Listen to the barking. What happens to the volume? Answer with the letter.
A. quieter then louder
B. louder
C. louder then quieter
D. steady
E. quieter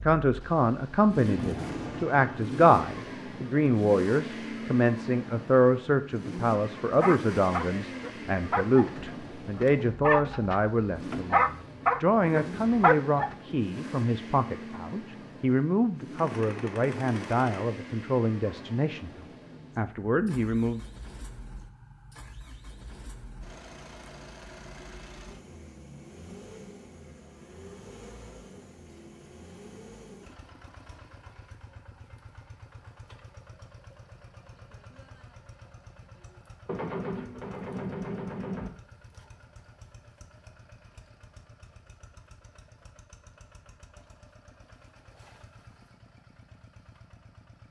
B.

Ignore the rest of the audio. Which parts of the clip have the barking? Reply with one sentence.
You can hear the barking from 7.0 to 13.3 s.